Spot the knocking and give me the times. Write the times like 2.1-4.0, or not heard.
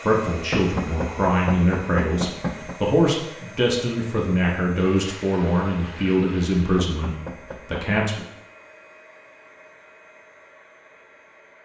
0.5-2.8, 6.8-7.9.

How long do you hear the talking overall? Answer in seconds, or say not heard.
8 s.